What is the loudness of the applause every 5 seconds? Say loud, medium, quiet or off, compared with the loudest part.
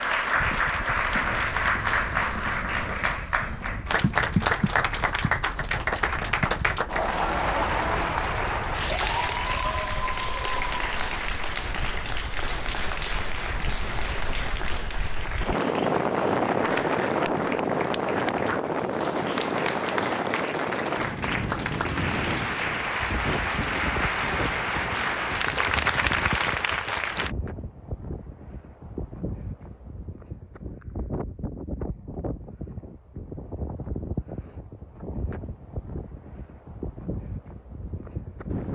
loud, loud, medium, medium, loud, loud, off, off.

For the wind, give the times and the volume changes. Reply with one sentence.
You can hear the wind from 0.0 to 38.7 s, getting louder then quieter.